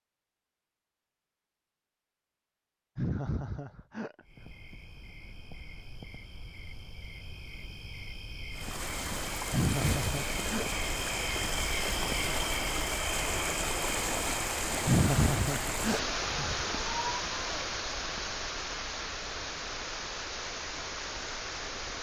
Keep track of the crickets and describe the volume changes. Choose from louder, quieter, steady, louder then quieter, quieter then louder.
louder then quieter.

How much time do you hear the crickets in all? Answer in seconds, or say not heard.
18 s.